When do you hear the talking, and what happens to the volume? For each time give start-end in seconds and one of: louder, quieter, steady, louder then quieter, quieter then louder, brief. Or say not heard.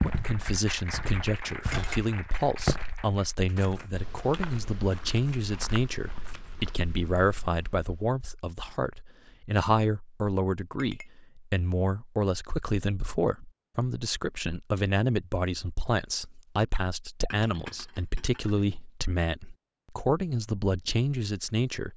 0.0-21.9 steady.